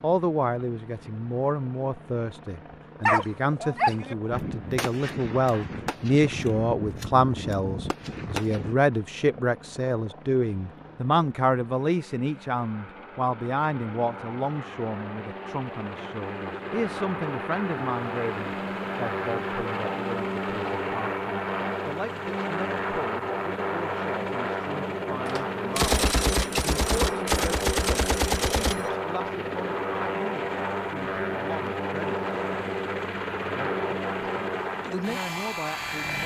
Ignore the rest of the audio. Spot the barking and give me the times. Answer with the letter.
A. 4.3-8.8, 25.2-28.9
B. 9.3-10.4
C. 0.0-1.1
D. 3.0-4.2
D.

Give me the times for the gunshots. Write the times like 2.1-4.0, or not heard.
4.3-8.8, 25.2-28.9.